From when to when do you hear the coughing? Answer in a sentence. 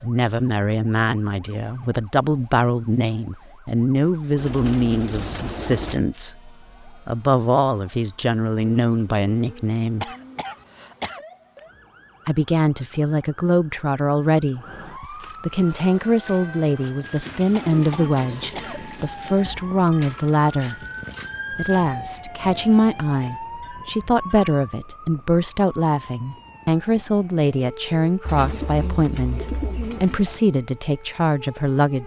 You can hear the coughing from 10.0 to 11.2 s and from 17.6 to 18.8 s.